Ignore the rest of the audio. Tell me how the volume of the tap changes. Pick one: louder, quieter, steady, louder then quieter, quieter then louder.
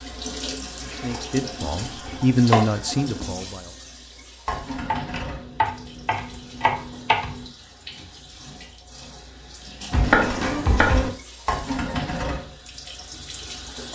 quieter then louder.